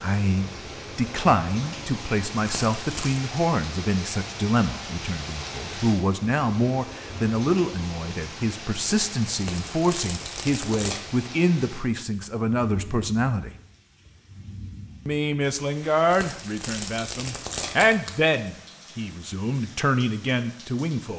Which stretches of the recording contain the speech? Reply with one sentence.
You can hear the speech from 0.0 to 13.5 s and from 15.1 to 21.1 s.